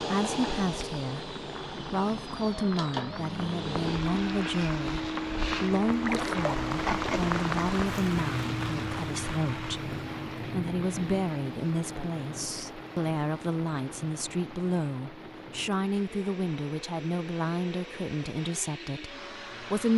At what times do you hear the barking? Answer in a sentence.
The barking can't be heard in this clip.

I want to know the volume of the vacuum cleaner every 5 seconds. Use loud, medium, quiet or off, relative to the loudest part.
loud, loud, medium, medium.